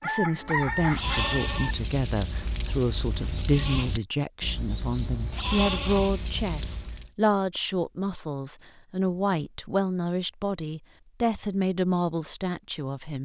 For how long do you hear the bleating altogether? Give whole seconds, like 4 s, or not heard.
7 s.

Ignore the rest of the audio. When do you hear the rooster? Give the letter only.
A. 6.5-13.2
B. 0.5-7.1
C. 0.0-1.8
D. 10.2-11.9
C.